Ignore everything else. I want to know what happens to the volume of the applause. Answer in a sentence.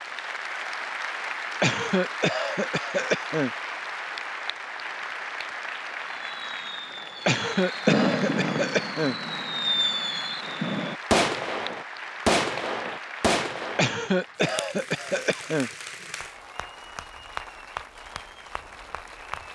The loudness of the applause goes down.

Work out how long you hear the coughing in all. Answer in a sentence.
You can hear the coughing for 6 seconds altogether.